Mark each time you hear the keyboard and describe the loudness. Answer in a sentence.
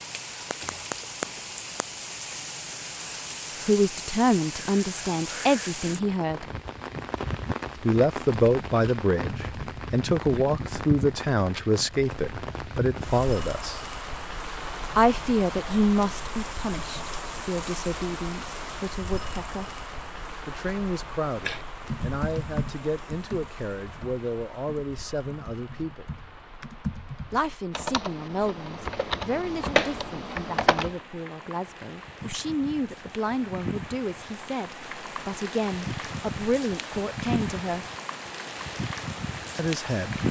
The keyboard can be heard from 21.4 to 31.0 s, getting quieter then louder.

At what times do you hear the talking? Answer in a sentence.
The talking can be heard from 3.6 to 6.5 s, from 7.8 to 13.8 s, from 14.9 to 19.8 s, from 20.4 to 26.1 s, from 27.3 to 37.9 s and from 39.5 to 40.1 s.